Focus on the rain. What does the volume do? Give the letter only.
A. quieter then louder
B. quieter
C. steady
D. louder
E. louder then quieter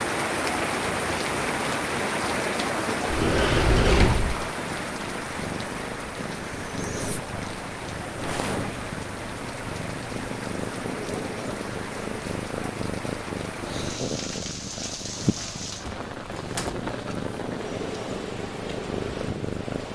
B.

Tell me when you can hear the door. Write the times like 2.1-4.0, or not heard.
3.0-4.5, 15.8-16.8.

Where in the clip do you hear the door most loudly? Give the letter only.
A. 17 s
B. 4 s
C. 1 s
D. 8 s
B.